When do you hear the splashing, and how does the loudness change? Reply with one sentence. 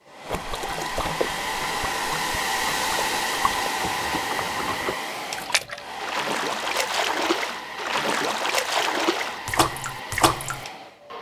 You can hear the splashing from 0.2 to 10.7 s, getting louder.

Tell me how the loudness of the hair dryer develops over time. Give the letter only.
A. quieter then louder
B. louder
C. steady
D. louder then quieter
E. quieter
E.